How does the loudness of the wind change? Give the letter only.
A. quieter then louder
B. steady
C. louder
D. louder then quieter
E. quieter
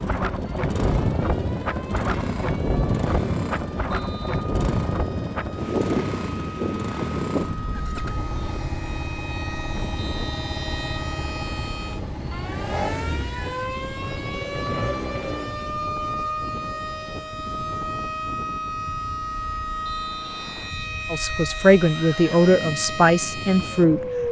E.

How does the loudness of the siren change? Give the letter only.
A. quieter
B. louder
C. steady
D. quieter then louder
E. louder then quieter
B.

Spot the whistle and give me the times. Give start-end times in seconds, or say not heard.
3.9-4.5, 10.0-10.9, 19.9-20.8.